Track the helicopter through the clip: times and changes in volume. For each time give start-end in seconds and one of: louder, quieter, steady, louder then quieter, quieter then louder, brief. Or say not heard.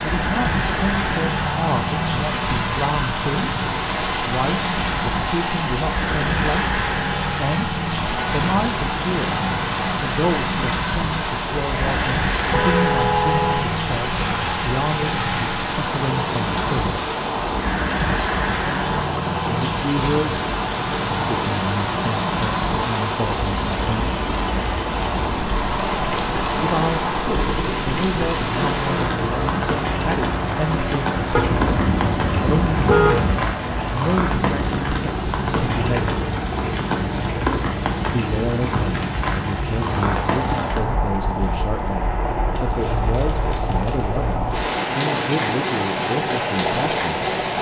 0.0-47.5 steady.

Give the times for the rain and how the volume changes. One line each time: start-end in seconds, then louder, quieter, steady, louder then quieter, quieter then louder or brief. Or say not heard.
0.0-47.5 steady.